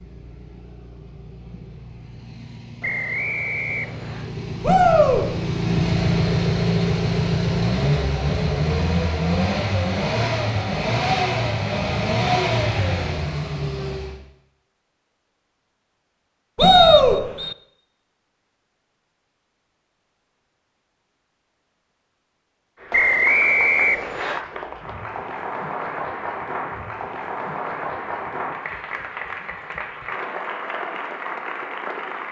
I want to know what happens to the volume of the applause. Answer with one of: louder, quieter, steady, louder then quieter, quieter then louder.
steady.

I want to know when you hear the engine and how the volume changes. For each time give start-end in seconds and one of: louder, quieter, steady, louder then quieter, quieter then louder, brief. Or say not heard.
0.0-14.2 louder.